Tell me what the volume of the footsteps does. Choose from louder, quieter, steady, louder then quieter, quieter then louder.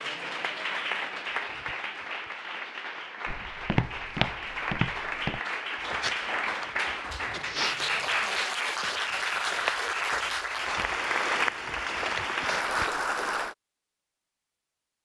quieter.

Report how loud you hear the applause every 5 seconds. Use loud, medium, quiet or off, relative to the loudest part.
medium, loud, loud.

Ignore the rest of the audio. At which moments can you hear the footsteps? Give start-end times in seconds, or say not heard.
3.2-12.7.